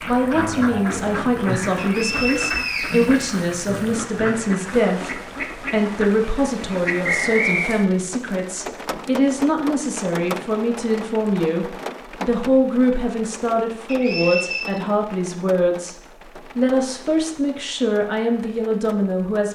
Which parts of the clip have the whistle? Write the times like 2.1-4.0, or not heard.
1.8-3.3, 7.0-7.8, 13.8-14.8.